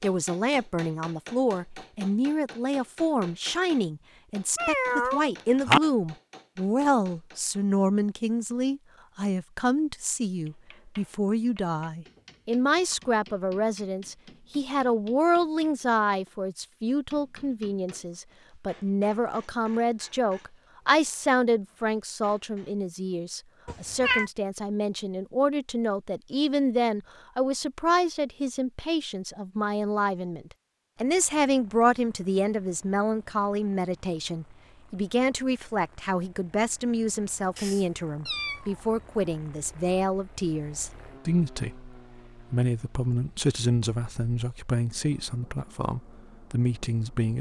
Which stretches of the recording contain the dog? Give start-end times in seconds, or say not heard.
not heard.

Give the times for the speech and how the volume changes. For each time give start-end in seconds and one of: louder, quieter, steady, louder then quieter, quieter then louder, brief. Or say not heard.
0.0-47.3 steady.